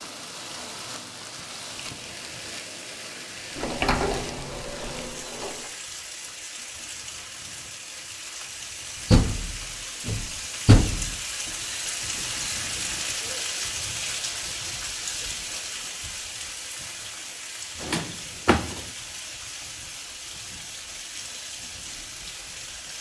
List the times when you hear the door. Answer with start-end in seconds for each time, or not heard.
3.5-5.7, 9.1-11.2, 17.8-18.9.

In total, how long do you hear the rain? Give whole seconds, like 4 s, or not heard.
23 s.